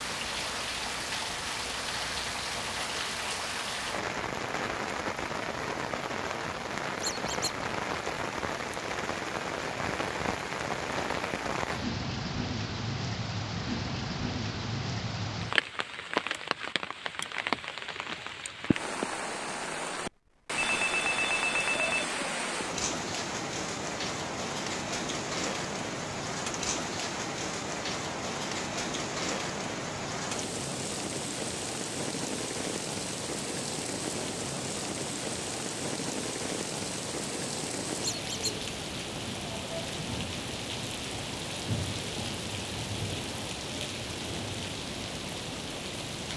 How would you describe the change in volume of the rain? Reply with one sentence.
The loudness of the rain stays about the same.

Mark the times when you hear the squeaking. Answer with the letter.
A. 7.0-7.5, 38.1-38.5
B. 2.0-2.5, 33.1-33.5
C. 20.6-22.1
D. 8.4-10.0
A.